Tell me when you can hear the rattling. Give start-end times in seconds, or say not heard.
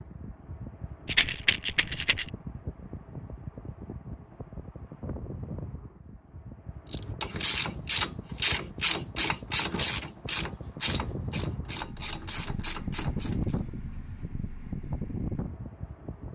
1.1-2.3.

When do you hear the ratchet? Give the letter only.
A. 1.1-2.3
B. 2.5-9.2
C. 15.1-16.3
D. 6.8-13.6
D.